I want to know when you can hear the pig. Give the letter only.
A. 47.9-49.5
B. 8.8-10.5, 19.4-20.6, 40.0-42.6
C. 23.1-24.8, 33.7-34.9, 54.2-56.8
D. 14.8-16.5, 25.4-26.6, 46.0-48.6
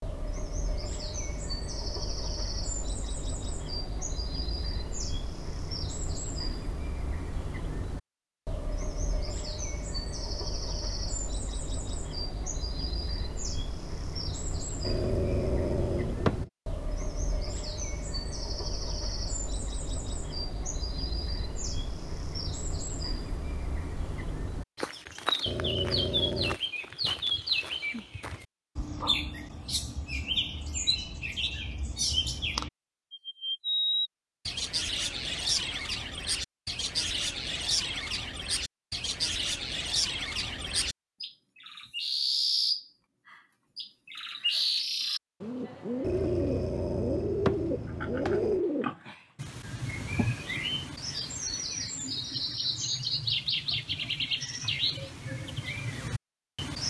A.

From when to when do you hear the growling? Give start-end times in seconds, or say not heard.
14.8-16.5, 25.4-26.6, 46.0-48.6.